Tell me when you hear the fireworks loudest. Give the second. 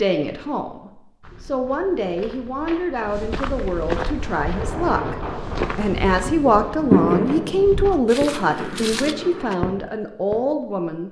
7 s.